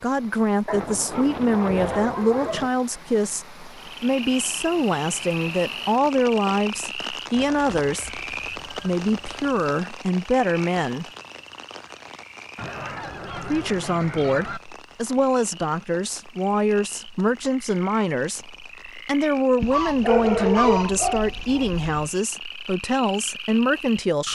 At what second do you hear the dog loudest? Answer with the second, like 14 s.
20 s.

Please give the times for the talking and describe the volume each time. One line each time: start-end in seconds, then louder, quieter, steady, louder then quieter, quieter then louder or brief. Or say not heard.
0.0-11.1 steady
13.3-24.2 steady.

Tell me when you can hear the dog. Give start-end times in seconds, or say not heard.
0.7-2.7, 19.6-22.1.